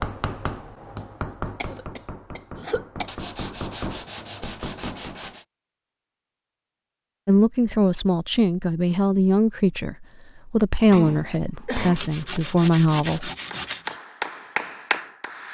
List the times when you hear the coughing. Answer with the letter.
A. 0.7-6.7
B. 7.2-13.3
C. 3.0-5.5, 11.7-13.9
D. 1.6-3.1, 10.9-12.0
D.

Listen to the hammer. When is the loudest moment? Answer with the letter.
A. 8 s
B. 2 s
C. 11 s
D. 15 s
D.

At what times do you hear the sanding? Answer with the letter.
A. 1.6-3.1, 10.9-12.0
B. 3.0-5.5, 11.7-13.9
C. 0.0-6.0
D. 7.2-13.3
B.